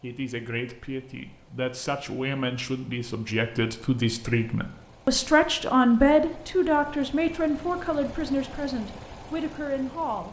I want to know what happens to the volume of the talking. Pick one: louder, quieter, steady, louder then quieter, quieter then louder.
louder then quieter.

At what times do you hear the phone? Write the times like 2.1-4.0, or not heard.
not heard.